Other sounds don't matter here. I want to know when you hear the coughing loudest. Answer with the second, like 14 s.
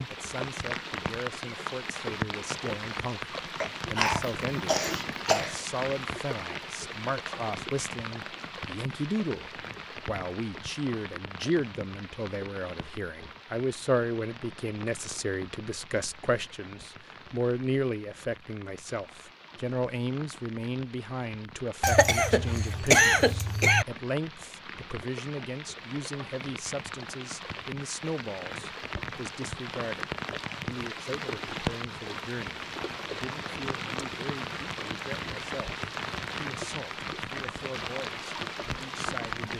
23 s.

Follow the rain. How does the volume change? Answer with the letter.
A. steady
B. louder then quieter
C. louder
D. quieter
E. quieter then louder
E.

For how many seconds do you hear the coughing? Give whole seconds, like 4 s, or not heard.
4 s.